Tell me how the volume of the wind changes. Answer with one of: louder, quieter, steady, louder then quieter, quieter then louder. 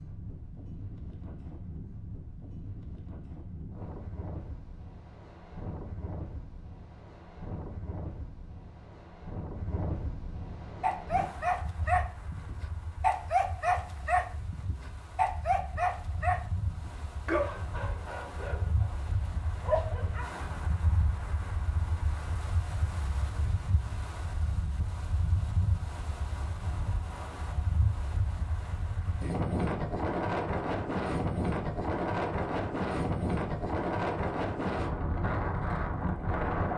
louder.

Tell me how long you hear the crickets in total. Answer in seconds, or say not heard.
not heard.